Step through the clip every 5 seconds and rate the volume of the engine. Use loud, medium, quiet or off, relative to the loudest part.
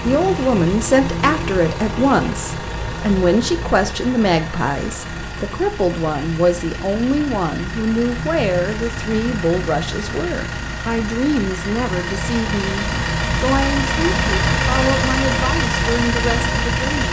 medium, medium, loud, loud.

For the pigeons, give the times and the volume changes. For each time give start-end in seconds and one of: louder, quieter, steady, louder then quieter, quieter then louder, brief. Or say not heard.
not heard.